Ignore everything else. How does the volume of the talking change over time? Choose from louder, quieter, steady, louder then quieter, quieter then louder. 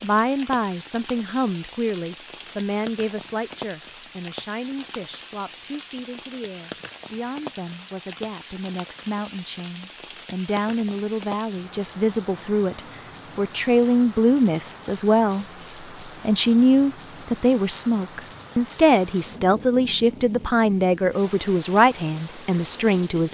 quieter then louder.